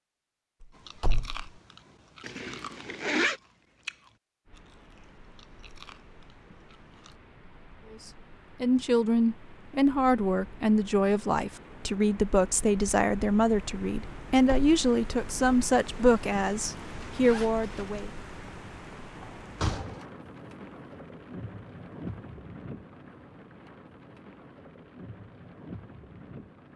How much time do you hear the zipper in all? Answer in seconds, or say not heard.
2 s.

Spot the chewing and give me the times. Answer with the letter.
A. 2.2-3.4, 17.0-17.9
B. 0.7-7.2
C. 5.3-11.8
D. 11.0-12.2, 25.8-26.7
B.